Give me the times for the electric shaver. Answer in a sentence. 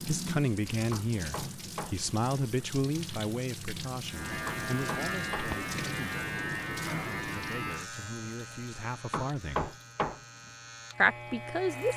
The electric shaver can be heard from 4.0 to 11.9 s.